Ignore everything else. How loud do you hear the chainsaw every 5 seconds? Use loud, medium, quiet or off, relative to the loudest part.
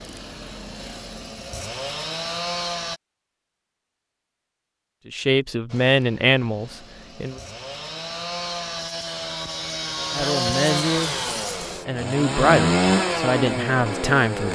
medium, medium, loud.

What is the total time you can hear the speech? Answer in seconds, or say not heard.
6 s.